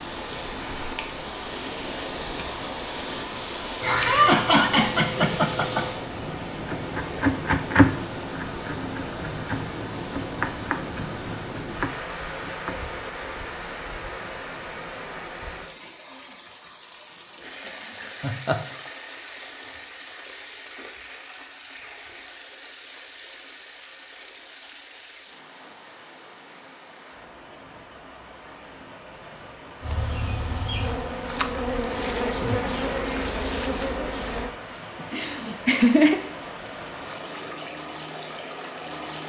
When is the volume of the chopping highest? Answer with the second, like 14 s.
8 s.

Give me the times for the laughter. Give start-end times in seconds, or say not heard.
3.8-6.0, 18.0-18.6, 35.0-36.2.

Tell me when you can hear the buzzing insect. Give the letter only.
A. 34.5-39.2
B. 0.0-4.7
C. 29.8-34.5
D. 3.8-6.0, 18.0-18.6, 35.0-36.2
C.